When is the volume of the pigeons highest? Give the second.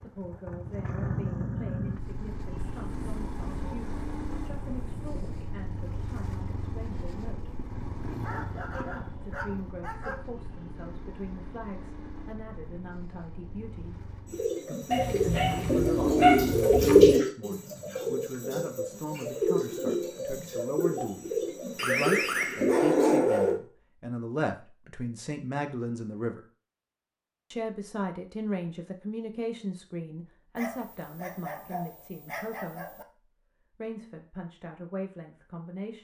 17 s.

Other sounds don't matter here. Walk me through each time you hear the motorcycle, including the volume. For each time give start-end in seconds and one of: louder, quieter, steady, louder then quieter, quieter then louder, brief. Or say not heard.
0.0-14.6 quieter.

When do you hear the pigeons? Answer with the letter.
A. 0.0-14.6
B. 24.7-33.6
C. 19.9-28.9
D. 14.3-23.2
D.